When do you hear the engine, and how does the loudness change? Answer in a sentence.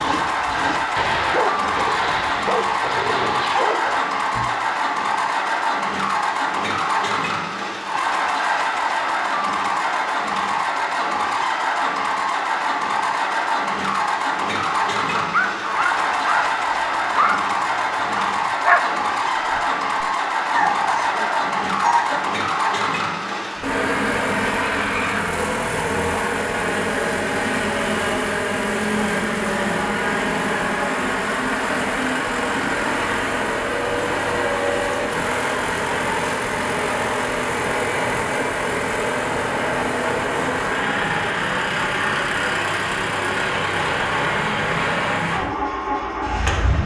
The engine can be heard from 0.0 to 46.8 s, at a steady volume.